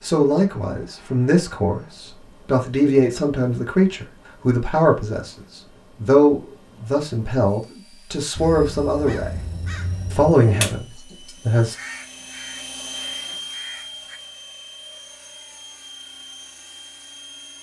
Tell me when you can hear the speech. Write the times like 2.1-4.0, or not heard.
0.0-5.3, 6.0-9.4, 10.1-11.8.